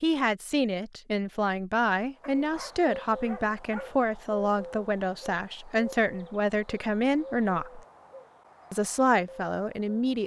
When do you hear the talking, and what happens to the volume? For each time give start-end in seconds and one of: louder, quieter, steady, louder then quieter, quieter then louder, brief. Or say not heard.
0.0-7.8 steady
8.7-10.2 brief.